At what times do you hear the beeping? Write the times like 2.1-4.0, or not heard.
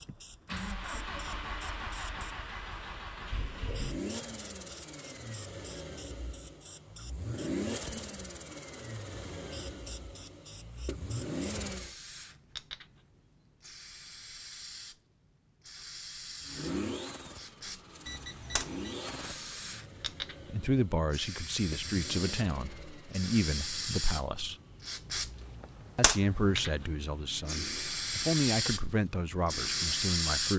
18.1-19.0.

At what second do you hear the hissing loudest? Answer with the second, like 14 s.
30 s.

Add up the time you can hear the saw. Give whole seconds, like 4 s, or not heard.
not heard.